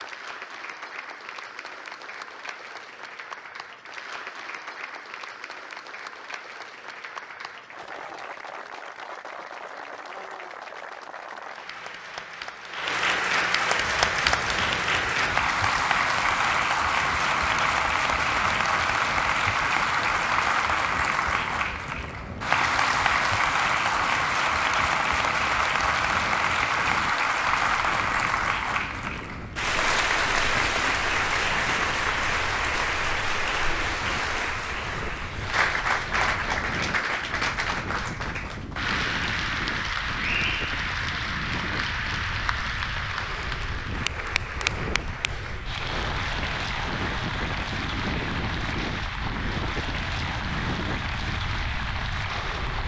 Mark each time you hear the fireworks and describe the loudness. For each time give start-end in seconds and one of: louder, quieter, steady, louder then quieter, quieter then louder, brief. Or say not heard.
not heard.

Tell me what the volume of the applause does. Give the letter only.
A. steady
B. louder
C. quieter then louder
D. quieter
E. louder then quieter
E.